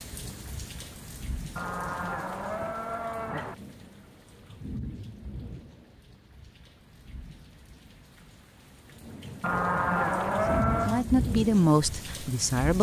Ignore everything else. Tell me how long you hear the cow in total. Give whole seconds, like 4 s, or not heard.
4 s.